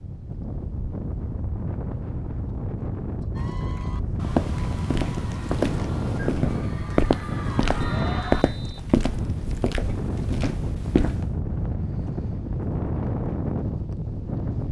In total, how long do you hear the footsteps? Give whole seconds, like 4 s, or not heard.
7 s.